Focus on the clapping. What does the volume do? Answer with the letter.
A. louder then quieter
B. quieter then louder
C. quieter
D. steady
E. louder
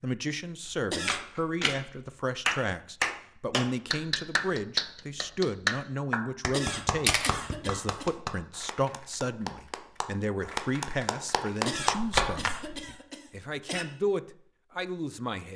B.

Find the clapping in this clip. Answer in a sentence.
The clapping can be heard from 2.5 to 12.5 s.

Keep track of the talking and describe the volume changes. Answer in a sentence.
The volume of the talking stays about the same.